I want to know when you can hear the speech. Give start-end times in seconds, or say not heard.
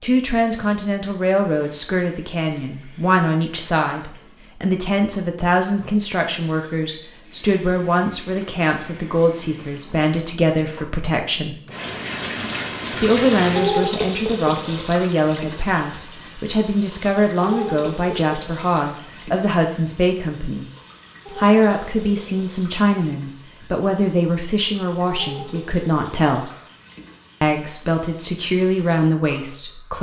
0.0-11.6, 12.9-20.6, 21.3-26.5, 27.4-29.9.